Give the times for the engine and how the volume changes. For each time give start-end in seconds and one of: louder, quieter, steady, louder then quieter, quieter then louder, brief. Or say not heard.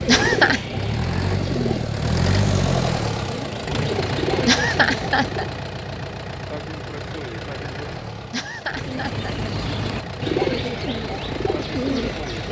0.0-12.4 quieter.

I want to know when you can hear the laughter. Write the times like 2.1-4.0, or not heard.
0.1-0.6, 4.5-5.5, 8.3-9.5.